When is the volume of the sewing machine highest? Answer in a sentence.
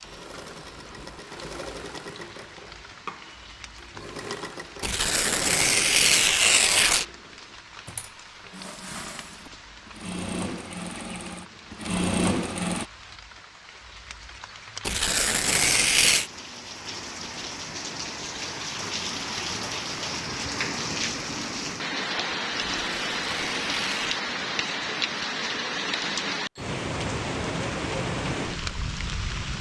The volume of the sewing machine peaks at 12 seconds.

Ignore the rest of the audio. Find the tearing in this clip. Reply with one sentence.
The tearing can be heard from 4.8 to 7.0 s, from 14.8 to 16.3 s and from 22.8 to 24.2 s.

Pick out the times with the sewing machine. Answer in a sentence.
You can hear the sewing machine from 0.0 to 12.8 s.